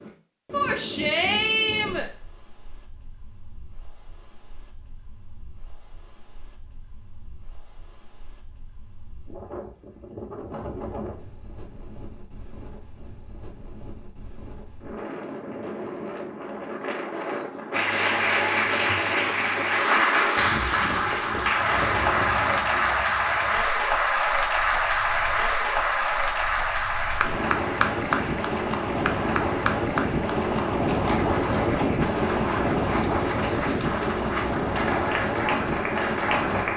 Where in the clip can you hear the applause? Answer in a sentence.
You can hear the applause from 17.7 to 36.7 s.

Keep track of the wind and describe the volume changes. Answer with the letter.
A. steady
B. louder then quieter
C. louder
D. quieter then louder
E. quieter
C.